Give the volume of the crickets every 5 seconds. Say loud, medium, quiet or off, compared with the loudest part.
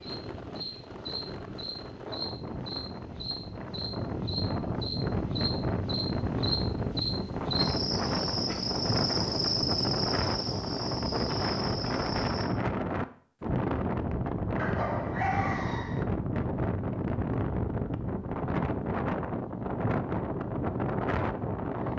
medium, loud, medium, off, off.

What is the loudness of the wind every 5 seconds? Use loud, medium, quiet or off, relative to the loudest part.
medium, loud, loud, loud, loud.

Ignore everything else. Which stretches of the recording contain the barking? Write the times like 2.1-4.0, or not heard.
14.6-16.1.